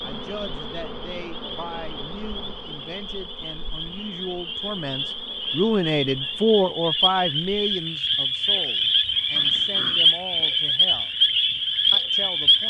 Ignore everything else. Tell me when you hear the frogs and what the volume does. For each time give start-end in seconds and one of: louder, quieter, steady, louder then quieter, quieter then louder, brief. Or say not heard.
0.0-12.6 louder.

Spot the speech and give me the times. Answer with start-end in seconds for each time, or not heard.
0.0-11.1, 11.9-12.6.